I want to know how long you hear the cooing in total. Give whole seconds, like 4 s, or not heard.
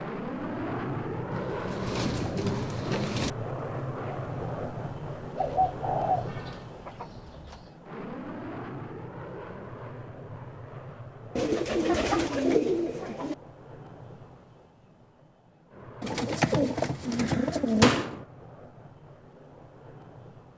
8 s.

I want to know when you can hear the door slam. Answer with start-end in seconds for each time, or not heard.
17.8-18.2.